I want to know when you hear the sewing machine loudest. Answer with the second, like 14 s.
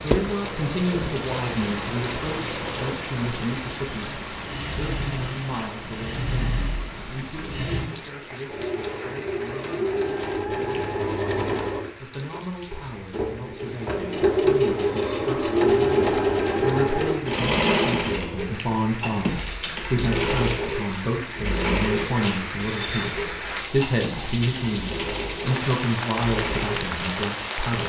16 s.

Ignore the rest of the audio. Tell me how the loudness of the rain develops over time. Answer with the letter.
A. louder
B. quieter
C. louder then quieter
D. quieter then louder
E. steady
D.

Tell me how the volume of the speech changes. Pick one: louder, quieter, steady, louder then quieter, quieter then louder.
quieter then louder.